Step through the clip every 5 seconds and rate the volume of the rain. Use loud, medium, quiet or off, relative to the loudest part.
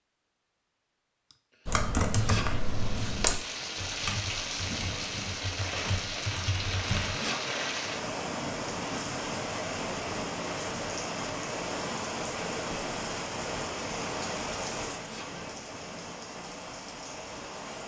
loud, loud, loud, medium.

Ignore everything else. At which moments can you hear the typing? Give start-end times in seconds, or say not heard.
1.6-7.2.